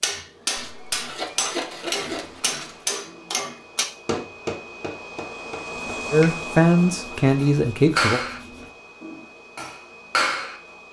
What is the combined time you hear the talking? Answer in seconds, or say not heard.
2 s.